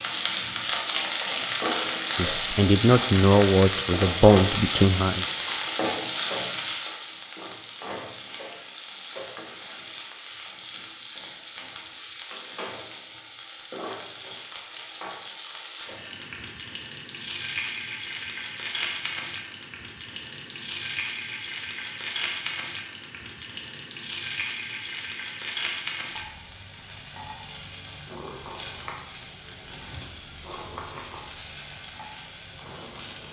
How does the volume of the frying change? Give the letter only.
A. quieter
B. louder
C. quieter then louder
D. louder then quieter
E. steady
A.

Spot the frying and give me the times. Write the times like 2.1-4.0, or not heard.
0.0-33.2.